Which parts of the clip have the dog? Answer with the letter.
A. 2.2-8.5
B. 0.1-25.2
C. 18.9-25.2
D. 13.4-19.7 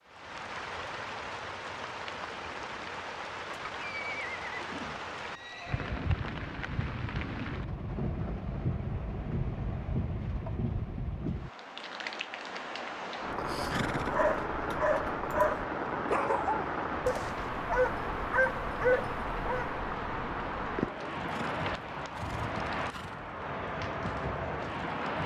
D.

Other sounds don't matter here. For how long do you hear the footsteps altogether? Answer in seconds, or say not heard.
not heard.